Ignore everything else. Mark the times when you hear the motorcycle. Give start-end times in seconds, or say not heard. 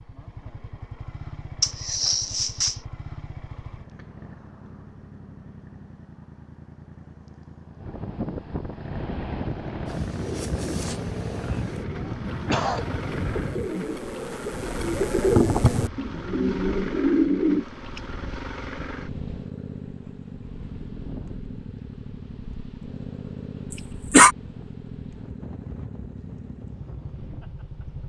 0.0-28.0.